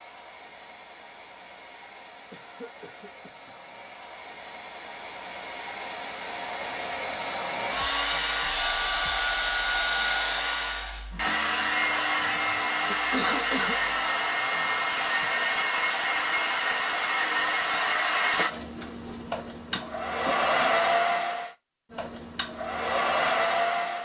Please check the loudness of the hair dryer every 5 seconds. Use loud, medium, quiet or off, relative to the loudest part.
quiet, loud, loud, loud, loud.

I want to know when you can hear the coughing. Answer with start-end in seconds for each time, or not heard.
2.3-3.5, 12.8-13.8, 19.6-20.5.